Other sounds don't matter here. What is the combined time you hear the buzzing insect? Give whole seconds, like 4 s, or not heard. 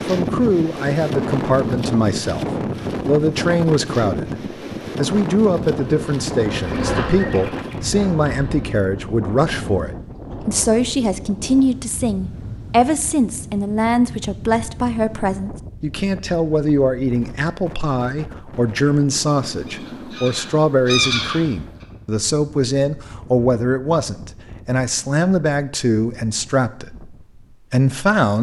3 s.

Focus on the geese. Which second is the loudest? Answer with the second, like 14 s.
21 s.